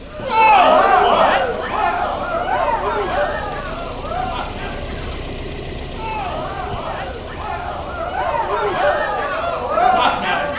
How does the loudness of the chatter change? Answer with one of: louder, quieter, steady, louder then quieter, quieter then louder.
quieter then louder.